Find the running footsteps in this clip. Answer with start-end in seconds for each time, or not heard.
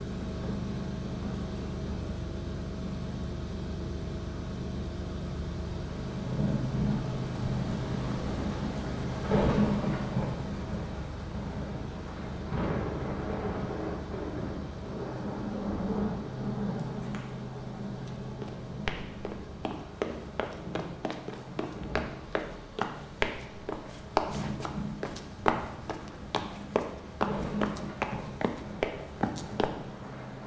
17.9-29.8.